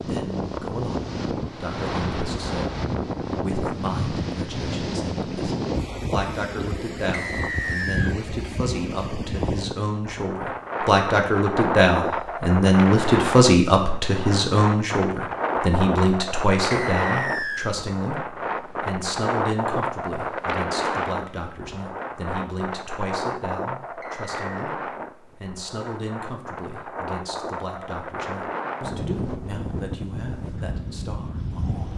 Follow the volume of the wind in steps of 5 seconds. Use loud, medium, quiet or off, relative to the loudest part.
loud, loud, loud, loud, loud, medium, medium.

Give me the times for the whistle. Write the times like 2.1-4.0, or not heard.
7.1-8.2, 16.7-17.7, 24.0-24.5.